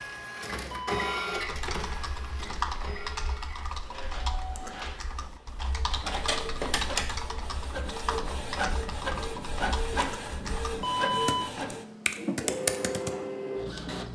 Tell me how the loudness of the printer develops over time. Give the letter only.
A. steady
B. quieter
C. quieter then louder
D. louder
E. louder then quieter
C.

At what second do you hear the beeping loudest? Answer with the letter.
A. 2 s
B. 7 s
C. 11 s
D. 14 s
C.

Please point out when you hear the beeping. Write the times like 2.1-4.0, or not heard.
0.7-1.1, 10.8-11.5.